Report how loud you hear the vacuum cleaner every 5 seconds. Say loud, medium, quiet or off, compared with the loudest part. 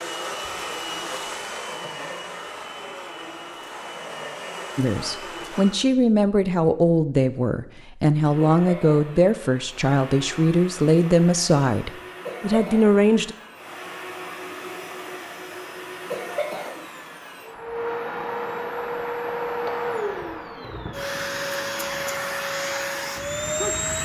medium, medium, medium, loud, loud.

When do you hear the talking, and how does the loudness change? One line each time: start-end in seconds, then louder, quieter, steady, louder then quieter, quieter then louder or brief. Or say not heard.
4.8-13.3 steady.